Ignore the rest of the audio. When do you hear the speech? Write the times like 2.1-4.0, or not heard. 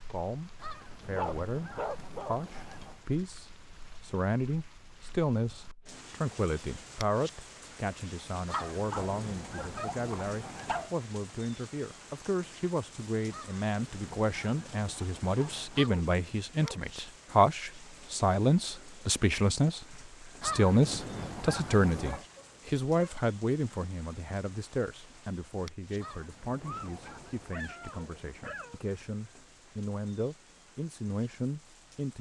0.1-32.1.